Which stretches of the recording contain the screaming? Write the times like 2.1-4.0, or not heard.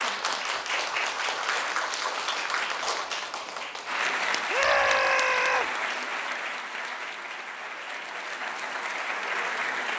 4.5-5.7.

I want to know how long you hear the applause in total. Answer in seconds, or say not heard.
10 s.